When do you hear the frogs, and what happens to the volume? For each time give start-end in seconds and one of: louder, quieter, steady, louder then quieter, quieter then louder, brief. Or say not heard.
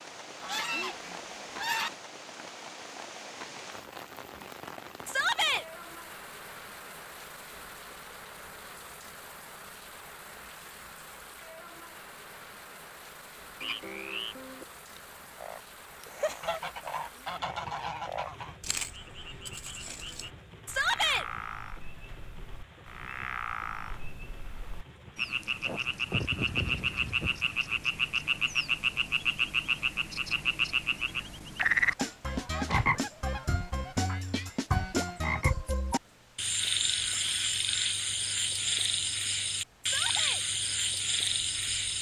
13.6-41.9 louder.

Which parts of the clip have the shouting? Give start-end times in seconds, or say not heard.
5.0-5.7, 20.6-21.2, 39.8-40.4.